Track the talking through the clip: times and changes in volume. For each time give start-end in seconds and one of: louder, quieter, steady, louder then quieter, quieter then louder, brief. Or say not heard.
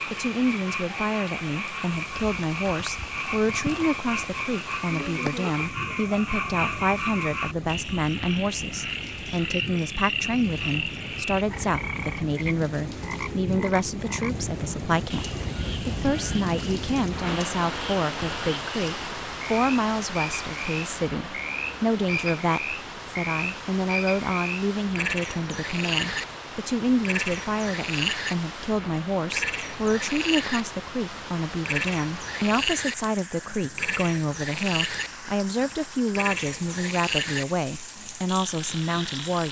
0.1-39.4 steady.